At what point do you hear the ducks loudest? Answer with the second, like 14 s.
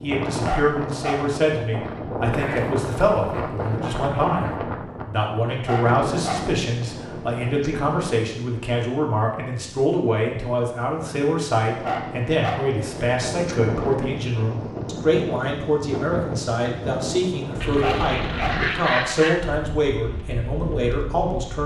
19 s.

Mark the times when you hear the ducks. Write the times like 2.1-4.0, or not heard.
2.3-4.4, 17.6-19.4.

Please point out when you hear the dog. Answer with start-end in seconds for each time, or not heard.
0.5-1.2, 5.7-6.4, 11.8-12.6, 17.8-18.6.